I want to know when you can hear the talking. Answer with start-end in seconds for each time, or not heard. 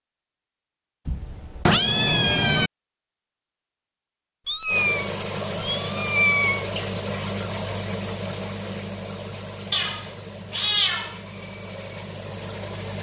not heard.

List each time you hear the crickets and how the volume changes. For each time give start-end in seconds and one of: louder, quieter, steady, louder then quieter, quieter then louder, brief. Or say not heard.
4.7-12.9 quieter.